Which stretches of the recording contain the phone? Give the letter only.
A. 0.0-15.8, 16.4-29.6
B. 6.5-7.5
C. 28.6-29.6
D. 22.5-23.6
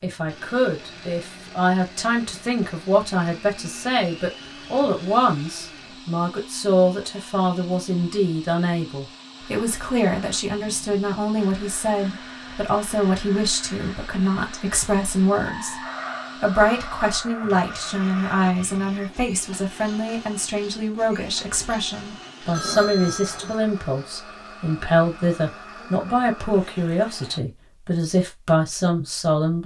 D.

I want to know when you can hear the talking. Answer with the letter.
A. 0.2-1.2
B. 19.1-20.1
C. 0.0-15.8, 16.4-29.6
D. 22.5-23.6
C.